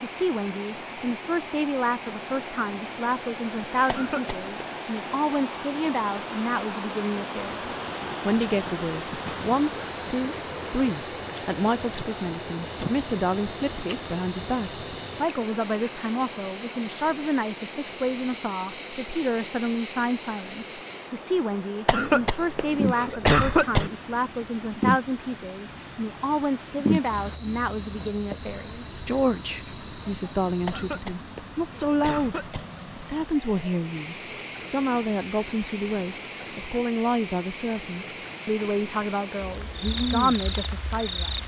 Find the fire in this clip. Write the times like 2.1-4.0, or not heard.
not heard.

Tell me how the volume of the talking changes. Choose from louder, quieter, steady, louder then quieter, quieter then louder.
steady.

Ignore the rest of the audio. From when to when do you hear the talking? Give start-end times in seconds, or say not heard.
0.0-41.4.